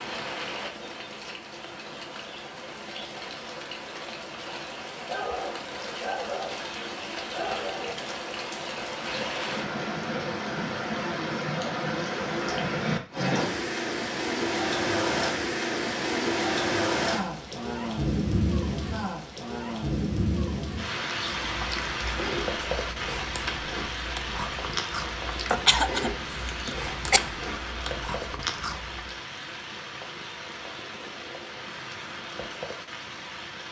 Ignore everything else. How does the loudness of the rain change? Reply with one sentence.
The volume of the rain goes up, then down.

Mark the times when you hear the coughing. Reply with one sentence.
You can hear the coughing from 25.4 to 27.2 s.